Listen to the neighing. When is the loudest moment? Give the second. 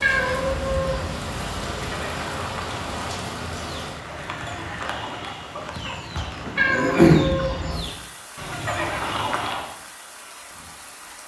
9 s.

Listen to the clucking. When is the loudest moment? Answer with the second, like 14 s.
7 s.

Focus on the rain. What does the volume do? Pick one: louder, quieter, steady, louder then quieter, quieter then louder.
quieter.